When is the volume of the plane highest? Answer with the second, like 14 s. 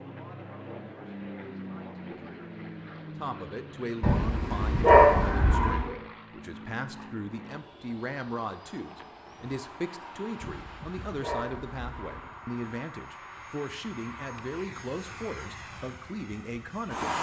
17 s.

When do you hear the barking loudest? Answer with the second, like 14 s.
5 s.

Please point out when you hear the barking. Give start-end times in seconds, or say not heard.
4.0-6.0, 10.4-12.2.